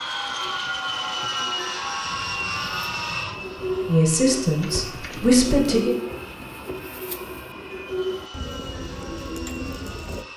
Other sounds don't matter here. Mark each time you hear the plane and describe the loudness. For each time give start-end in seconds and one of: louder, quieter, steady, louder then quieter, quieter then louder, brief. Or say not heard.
0.0-10.3 quieter.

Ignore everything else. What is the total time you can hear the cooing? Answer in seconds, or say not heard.
10 s.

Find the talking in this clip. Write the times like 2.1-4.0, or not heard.
3.9-5.9.